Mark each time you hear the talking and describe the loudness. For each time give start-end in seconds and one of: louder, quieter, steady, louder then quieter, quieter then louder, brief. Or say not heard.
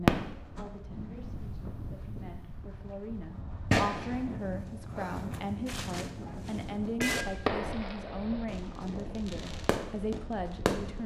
0.0-11.0 louder.